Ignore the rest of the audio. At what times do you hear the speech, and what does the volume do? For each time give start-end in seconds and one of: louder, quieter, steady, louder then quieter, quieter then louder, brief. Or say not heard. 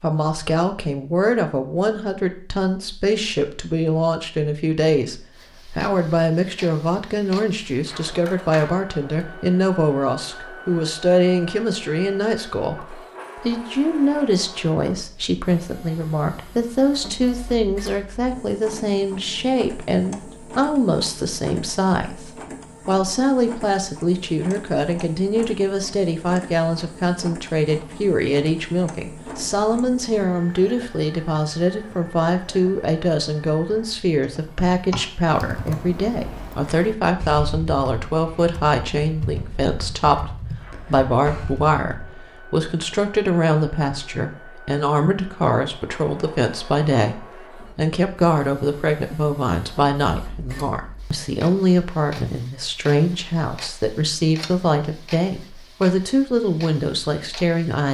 0.0-57.8 steady.